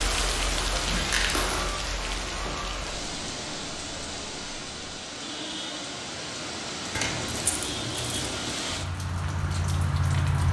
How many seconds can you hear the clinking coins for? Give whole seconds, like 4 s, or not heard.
3 s.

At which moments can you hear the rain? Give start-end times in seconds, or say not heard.
0.0-10.4.